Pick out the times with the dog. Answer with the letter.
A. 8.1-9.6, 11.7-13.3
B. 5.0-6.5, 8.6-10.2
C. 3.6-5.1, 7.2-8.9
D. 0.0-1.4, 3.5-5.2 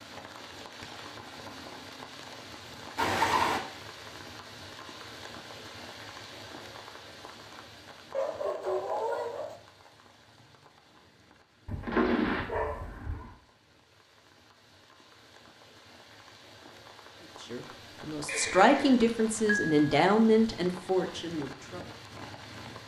A.